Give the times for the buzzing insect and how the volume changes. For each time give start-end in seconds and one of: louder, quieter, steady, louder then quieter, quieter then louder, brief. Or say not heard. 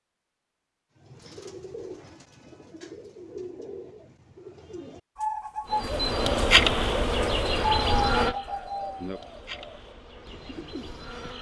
5.7-11.3 quieter.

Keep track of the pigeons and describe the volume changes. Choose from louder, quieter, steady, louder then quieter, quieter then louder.
louder then quieter.